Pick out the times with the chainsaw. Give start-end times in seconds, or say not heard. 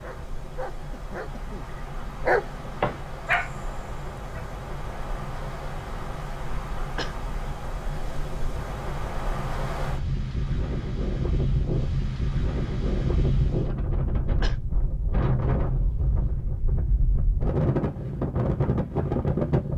not heard.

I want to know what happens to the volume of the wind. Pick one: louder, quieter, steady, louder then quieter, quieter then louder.
louder.